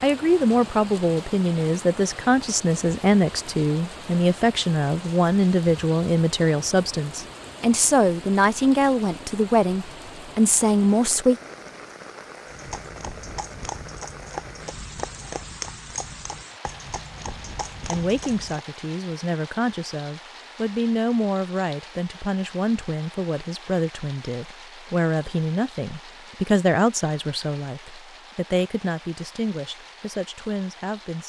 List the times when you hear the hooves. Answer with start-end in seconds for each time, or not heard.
12.4-18.6.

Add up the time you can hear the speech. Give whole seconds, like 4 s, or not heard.
25 s.